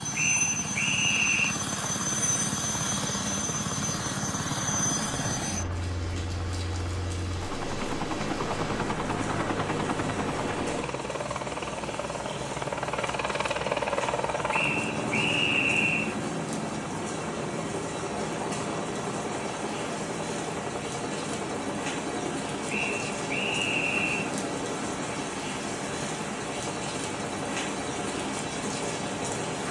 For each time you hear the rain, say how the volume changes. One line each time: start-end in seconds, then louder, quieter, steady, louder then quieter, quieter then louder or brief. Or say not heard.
0.0-29.6 louder.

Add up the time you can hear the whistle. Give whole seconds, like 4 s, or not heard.
5 s.